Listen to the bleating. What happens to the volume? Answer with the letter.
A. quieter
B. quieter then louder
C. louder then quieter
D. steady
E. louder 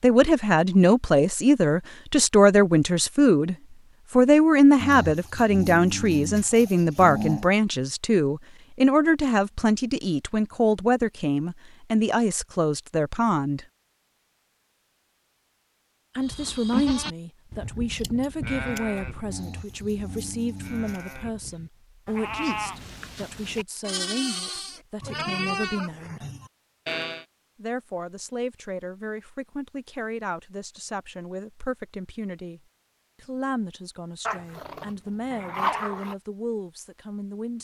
B.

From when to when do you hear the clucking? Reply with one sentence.
You can't hear the clucking here.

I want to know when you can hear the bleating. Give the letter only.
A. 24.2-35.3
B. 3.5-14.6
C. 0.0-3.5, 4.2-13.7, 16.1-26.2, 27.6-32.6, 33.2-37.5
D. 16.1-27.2
D.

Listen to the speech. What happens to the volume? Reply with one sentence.
The volume of the speech goes down.